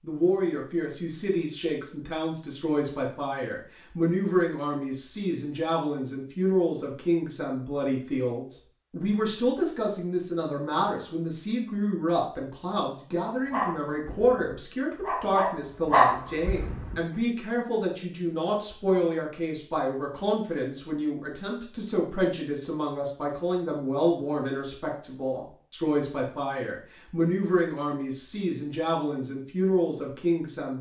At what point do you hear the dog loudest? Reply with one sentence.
The volume of the dog peaks at 16 seconds.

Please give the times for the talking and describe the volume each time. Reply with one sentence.
The talking can be heard from 0.0 to 30.7 s, at a steady volume.